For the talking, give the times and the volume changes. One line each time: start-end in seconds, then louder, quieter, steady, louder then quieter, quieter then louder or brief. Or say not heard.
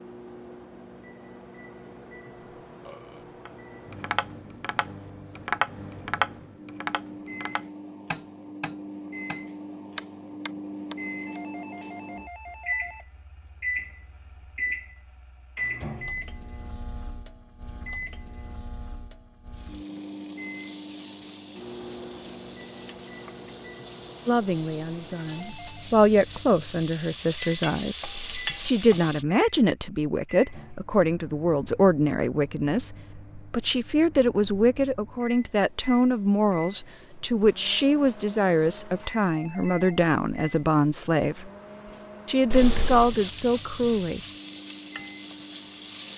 24.2-41.5 steady
42.2-44.2 brief.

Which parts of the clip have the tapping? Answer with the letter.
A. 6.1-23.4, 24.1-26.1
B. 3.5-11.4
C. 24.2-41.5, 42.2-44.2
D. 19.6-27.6
B.